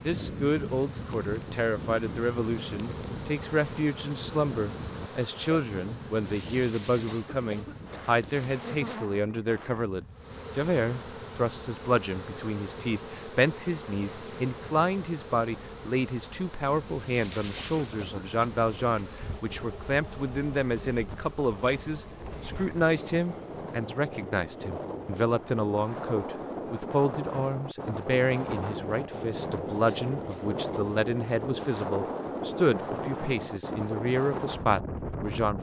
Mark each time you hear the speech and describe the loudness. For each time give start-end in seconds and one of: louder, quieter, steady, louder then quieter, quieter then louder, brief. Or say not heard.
0.0-35.5 steady.